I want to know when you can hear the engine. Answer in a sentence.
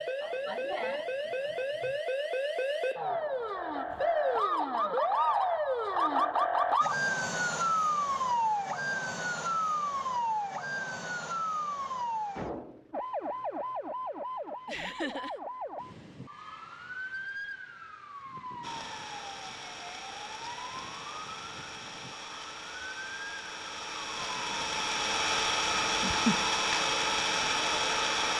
You can hear the engine from 18.6 to 28.3 s.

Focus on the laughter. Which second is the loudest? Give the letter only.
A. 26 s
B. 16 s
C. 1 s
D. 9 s
A.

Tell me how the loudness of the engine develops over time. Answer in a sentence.
The volume of the engine goes up.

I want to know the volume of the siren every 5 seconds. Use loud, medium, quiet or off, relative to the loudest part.
loud, loud, medium, quiet, quiet, off.